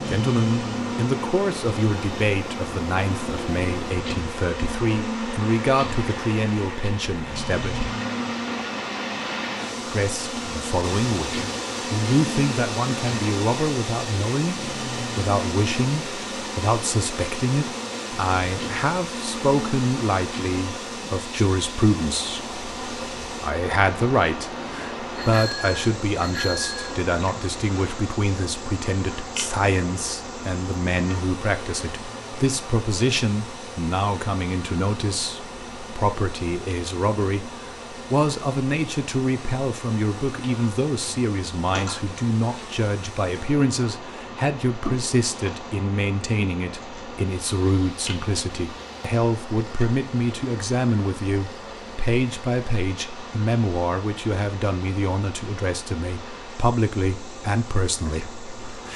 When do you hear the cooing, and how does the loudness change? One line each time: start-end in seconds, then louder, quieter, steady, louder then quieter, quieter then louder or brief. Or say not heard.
not heard.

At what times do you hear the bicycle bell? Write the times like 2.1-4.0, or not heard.
25.1-26.9.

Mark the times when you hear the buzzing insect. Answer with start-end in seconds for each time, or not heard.
0.0-58.9.